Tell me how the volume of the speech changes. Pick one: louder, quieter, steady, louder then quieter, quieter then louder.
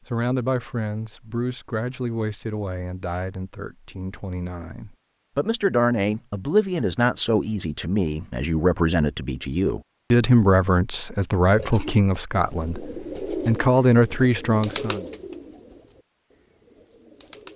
louder.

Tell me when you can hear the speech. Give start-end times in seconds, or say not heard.
0.1-15.1.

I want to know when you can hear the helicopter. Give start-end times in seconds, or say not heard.
not heard.